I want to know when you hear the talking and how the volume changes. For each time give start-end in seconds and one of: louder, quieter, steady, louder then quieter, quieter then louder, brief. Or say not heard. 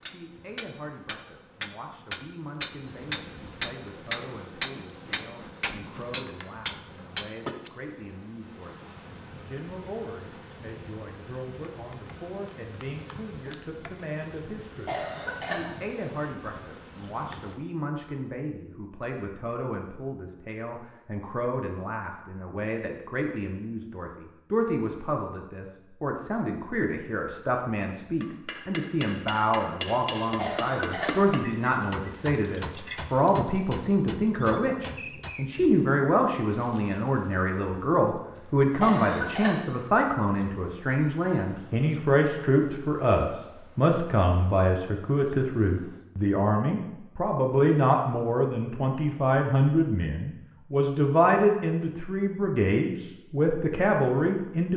0.0-54.7 louder.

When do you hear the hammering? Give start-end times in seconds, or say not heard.
0.0-7.7, 28.2-35.7.